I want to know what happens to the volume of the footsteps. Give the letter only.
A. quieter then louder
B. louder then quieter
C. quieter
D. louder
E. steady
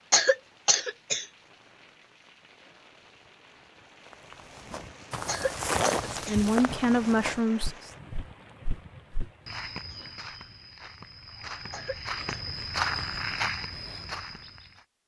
A.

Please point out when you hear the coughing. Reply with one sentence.
You can hear the coughing from 0.1 to 1.2 s, from 5.2 to 6.4 s and from 11.7 to 12.5 s.